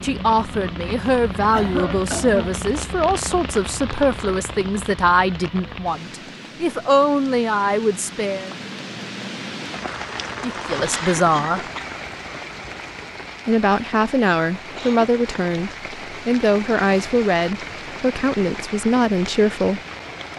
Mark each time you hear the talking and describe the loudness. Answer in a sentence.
The talking can be heard from 0.0 to 8.5 s, at a steady volume; briefly from 10.4 to 11.7 s; and from 13.4 to 19.8 s, at a steady volume.